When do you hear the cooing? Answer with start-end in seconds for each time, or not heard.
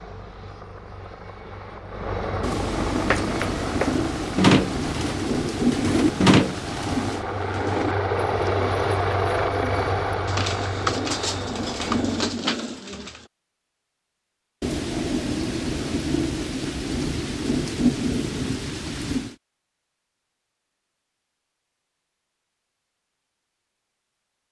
3.0-13.2.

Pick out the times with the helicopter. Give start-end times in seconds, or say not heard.
0.0-12.5.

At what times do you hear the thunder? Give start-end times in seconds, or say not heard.
2.4-7.2, 14.6-19.4.